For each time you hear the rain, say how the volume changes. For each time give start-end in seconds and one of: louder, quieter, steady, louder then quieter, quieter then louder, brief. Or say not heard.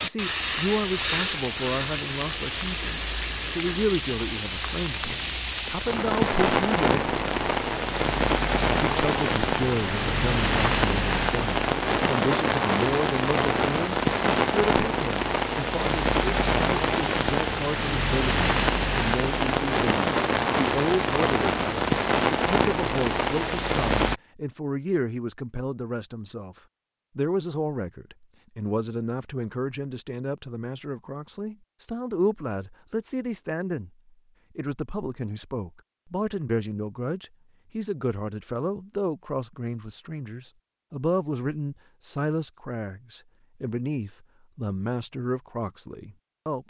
0.0-24.2 steady.